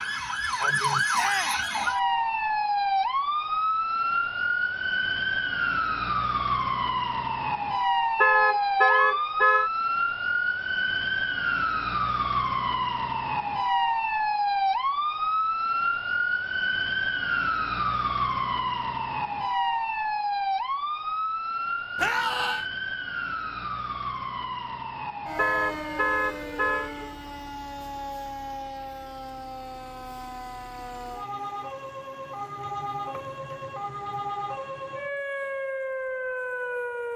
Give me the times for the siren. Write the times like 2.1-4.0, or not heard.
0.0-37.1.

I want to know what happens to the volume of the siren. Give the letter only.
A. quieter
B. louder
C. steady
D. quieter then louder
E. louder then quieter
A.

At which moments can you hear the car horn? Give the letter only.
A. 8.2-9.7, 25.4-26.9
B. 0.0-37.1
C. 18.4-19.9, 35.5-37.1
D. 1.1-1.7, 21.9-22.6
A.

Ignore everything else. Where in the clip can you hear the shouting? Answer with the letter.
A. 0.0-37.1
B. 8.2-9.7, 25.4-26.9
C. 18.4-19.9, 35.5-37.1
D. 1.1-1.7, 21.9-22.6
D.